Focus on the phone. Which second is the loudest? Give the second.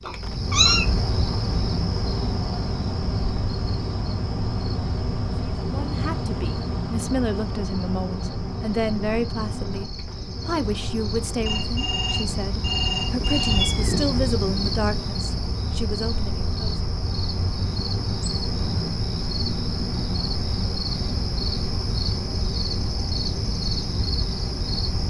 13 s.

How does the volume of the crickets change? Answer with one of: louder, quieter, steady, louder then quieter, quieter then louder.
quieter then louder.